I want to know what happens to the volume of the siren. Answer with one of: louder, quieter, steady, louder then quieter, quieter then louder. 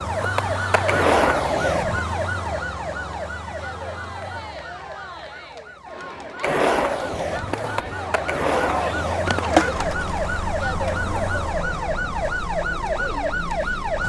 quieter then louder.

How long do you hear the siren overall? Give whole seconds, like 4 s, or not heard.
14 s.